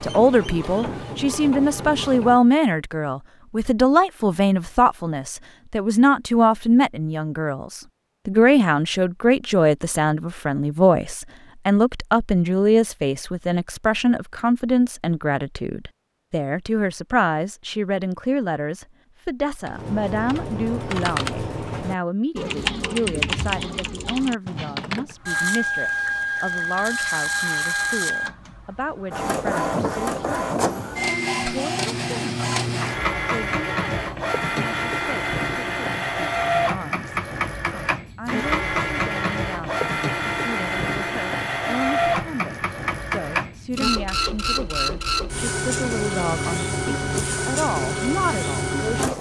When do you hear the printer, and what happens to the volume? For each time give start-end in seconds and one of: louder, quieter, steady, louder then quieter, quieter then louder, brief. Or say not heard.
0.0-2.4 brief
25.2-49.1 steady.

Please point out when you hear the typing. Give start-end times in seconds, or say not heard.
19.6-25.1.